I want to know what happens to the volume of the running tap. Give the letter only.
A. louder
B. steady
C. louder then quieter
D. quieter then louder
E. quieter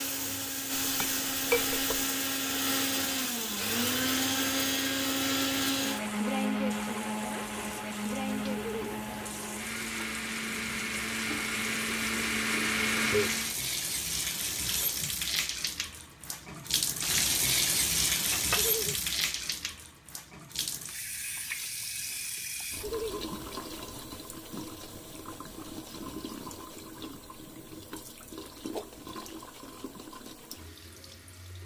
C.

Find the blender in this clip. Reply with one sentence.
The blender can be heard from 0.0 to 13.6 s.